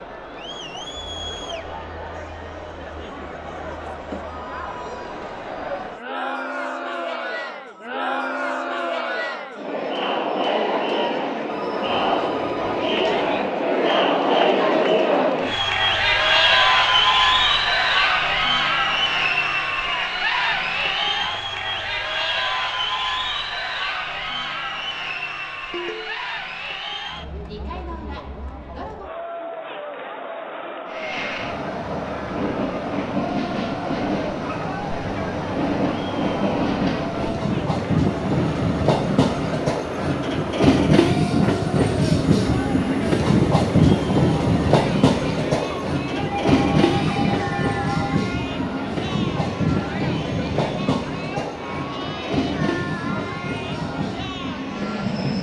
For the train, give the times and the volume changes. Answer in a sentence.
You can hear the train from 30.9 to 55.3 s, getting louder then quieter.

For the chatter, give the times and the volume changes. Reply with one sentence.
You can hear the chatter from 0.0 to 55.3 s, getting louder then quieter.